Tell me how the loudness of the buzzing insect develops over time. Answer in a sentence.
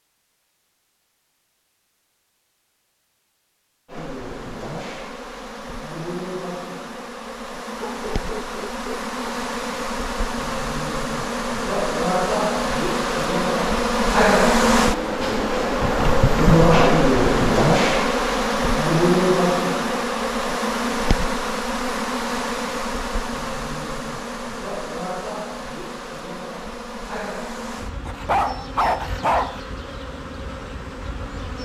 The volume of the buzzing insect goes up, then down.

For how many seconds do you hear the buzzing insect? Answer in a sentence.
The buzzing insect can be heard for 28 seconds in total.